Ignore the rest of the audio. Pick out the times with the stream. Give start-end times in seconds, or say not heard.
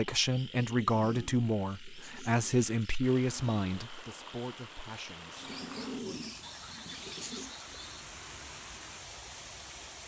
3.0-10.0.